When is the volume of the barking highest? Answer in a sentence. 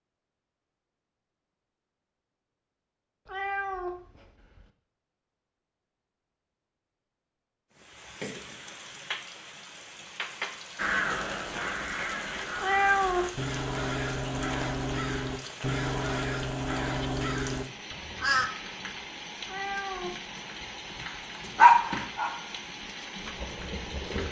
The volume of the barking peaks at 22 seconds.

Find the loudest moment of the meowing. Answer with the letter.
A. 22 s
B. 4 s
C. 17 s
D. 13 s
D.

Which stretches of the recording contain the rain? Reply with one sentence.
You can hear the rain from 7.7 to 24.2 s.